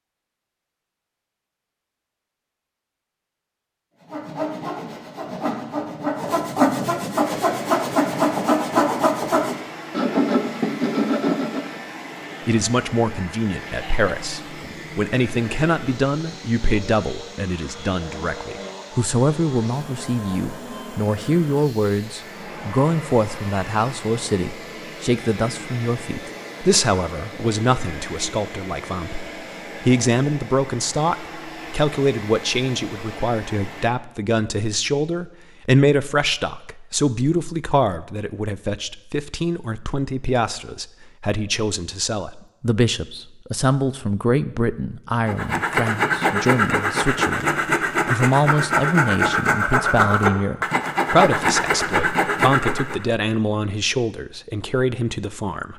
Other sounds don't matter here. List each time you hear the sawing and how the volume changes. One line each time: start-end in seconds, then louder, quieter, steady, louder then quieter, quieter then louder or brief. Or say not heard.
4.0-11.8 louder
45.2-53.0 steady.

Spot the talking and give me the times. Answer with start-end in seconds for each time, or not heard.
12.4-55.7.